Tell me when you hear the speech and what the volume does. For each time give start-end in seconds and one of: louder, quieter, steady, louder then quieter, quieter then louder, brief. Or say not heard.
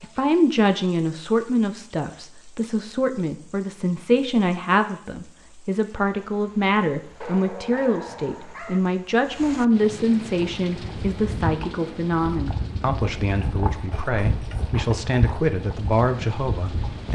0.0-17.0 steady.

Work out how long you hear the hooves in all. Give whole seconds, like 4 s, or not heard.
7 s.